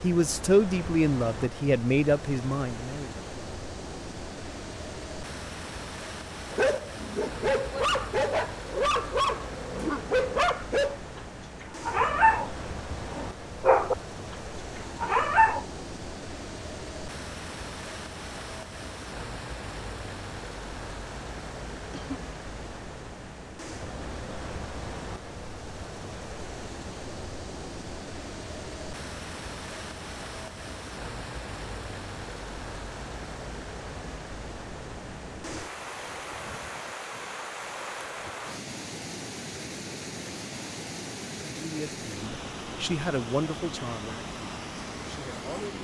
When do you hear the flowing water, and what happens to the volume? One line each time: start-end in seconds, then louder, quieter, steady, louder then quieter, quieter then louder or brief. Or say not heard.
0.0-45.7 steady.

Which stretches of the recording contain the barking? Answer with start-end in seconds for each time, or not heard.
6.5-15.7.